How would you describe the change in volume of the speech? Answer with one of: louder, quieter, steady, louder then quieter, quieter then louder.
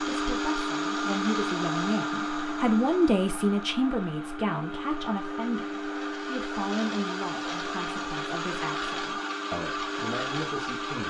louder then quieter.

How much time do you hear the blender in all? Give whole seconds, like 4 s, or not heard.
11 s.